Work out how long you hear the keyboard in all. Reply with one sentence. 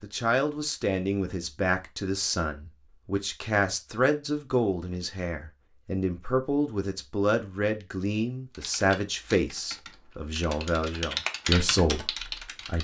The keyboard can be heard for 4 seconds in total.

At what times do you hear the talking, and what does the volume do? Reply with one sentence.
You can hear the talking from 0.0 to 12.7 s, at a steady volume.